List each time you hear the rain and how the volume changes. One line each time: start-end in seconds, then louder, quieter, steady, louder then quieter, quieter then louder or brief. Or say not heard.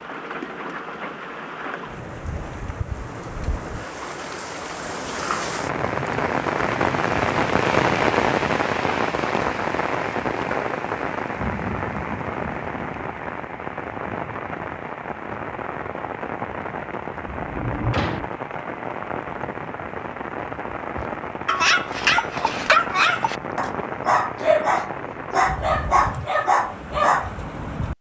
0.0-27.9 louder then quieter.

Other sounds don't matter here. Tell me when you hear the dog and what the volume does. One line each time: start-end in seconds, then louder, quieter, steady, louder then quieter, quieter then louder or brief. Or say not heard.
20.9-27.4 steady.